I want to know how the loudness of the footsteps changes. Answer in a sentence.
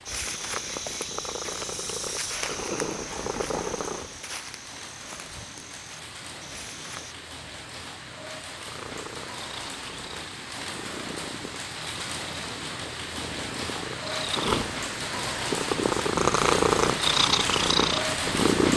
The volume of the footsteps goes down.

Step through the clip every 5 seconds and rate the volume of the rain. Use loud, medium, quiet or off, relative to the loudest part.
quiet, medium, medium, loud.